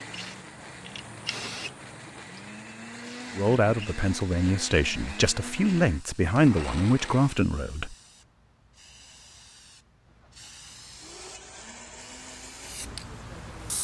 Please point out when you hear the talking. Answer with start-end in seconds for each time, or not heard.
3.4-8.0.